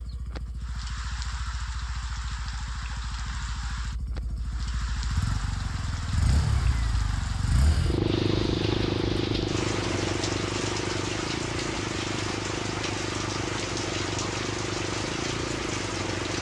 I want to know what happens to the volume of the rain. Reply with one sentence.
The volume of the rain goes up.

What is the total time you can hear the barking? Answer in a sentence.
You can't hear the barking here.